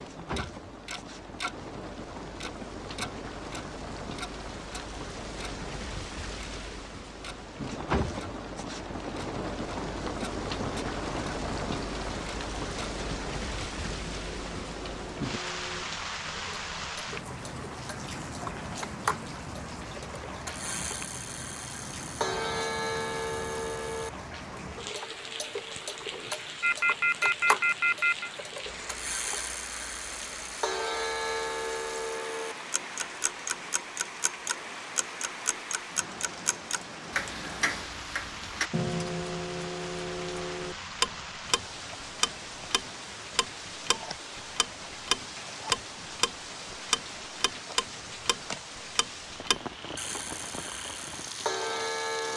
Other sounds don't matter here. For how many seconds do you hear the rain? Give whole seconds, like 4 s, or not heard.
52 s.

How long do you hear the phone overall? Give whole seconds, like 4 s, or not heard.
2 s.